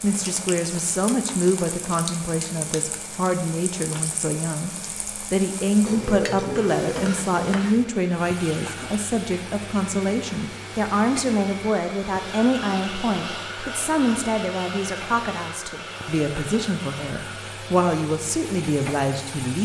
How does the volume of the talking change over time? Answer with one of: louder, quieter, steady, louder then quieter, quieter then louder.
steady.